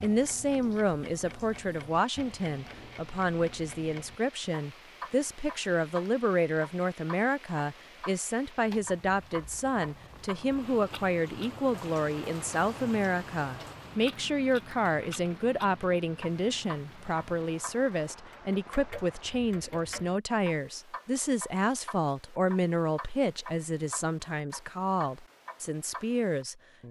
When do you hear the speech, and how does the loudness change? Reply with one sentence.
The speech can be heard from 0.0 to 26.8 s, at a steady volume.